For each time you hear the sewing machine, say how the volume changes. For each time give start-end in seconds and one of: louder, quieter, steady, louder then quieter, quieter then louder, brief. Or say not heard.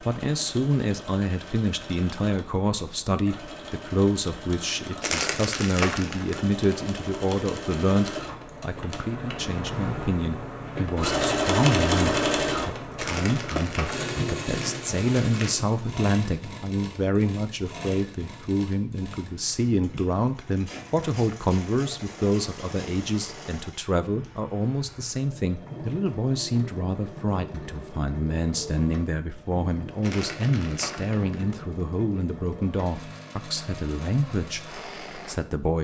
0.0-35.5 louder then quieter.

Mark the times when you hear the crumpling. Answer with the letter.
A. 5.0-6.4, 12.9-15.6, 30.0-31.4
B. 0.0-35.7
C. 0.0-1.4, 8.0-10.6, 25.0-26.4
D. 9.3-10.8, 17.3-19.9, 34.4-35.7
A.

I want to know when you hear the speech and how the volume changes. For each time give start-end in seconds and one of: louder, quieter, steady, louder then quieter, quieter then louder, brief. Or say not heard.
0.0-35.7 steady.